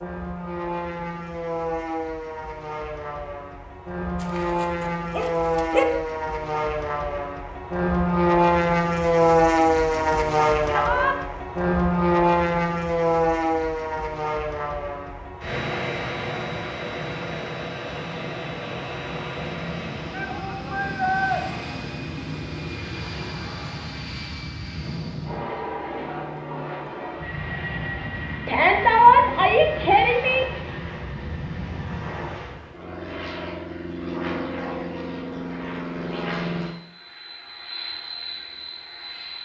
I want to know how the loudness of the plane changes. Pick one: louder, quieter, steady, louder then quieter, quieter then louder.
louder then quieter.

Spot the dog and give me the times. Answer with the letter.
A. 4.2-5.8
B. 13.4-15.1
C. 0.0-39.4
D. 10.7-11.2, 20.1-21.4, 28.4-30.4
A.